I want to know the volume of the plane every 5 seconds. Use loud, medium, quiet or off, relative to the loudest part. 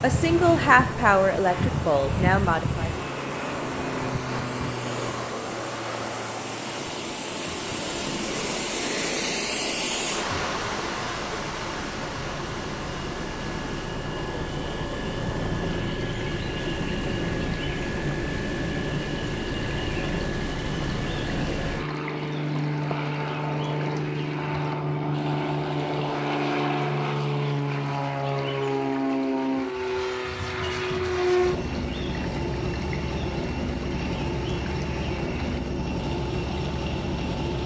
loud, medium, medium, loud, loud, loud, loud, loud.